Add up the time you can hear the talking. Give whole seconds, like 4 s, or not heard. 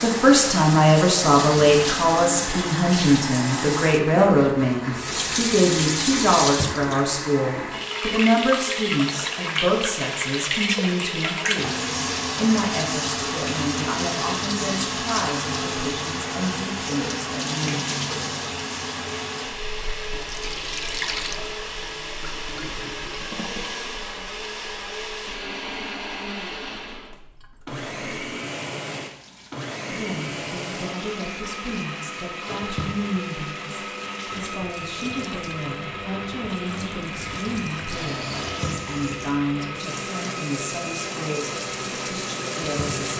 31 s.